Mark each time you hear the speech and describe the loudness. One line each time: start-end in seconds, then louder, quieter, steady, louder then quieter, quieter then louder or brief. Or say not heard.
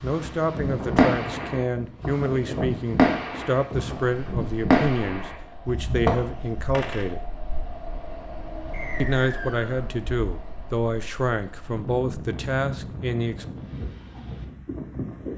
0.0-7.2 steady
9.0-13.4 steady.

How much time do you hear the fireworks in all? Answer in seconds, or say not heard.
7 s.